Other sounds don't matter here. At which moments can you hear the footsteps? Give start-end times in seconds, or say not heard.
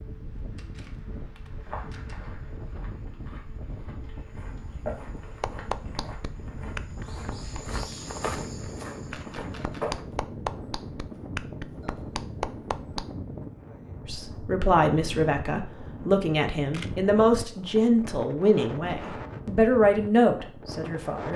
1.6-10.1.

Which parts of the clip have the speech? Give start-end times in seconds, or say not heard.
14.1-21.3.